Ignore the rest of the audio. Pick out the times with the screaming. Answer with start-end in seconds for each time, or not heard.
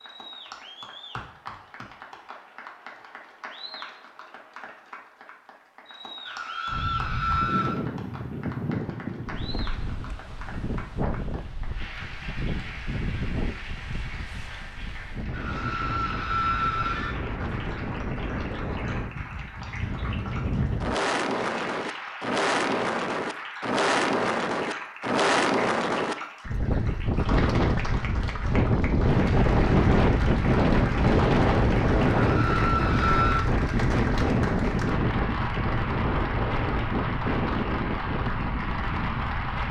6.2-7.8, 15.3-17.1, 32.1-33.5.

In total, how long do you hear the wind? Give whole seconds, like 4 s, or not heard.
33 s.